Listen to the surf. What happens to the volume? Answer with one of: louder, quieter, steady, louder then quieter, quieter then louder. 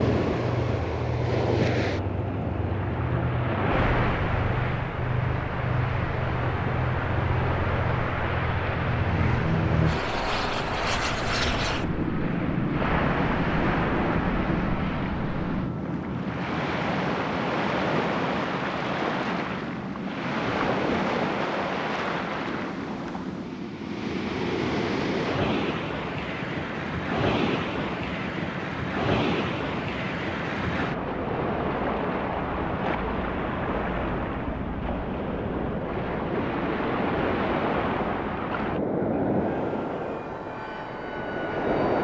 steady.